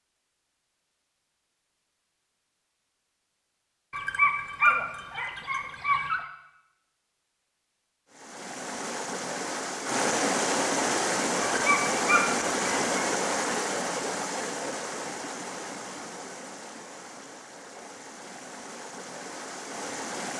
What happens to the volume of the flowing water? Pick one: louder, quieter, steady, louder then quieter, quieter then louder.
quieter.